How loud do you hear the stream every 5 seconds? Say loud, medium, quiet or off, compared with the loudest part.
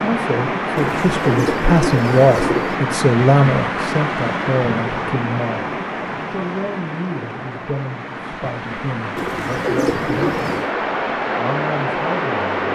loud, medium, loud.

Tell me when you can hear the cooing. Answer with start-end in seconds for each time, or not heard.
0.8-2.8, 9.2-10.7.